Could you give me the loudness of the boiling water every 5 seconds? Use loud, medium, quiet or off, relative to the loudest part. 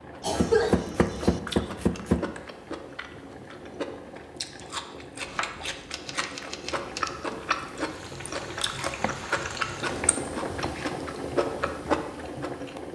medium, medium, loud.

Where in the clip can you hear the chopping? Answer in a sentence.
You can hear the chopping from 0.3 to 2.2 s, from 5.2 to 7.1 s and from 8.8 to 10.9 s.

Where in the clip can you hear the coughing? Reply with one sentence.
You can hear the coughing from 0.2 to 1.4 s.